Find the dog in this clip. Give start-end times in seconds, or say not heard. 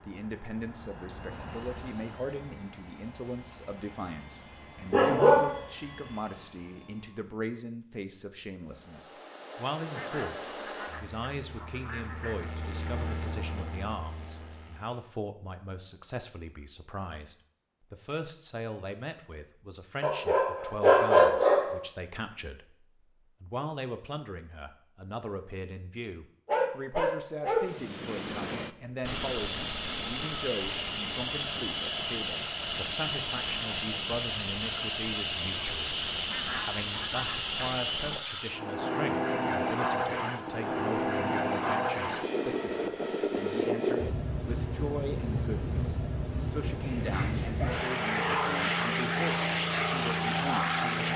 4.9-5.5, 20.0-21.8, 26.4-27.6, 46.8-48.6.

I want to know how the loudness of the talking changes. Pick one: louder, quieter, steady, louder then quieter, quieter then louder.
steady.